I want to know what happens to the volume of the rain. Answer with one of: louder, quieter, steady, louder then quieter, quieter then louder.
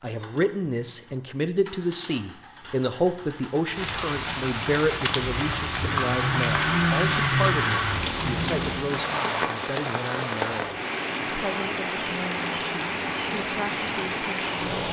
steady.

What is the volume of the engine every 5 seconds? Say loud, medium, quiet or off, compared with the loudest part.
quiet, loud, off.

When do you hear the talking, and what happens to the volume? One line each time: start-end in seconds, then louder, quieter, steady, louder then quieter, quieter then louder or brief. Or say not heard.
0.0-14.6 quieter.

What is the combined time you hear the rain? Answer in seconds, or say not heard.
11 s.